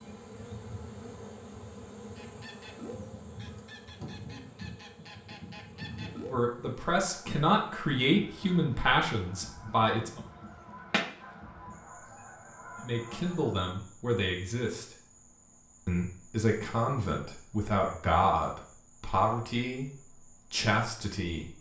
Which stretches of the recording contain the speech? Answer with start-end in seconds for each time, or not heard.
6.3-10.2, 12.8-14.8, 15.8-21.5.